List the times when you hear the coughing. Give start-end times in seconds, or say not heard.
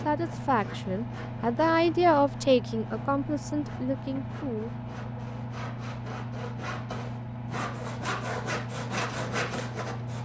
not heard.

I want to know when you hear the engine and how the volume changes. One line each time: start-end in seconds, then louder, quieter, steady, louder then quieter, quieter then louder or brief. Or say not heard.
0.0-10.2 steady.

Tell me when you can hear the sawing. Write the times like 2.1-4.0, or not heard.
0.0-10.2.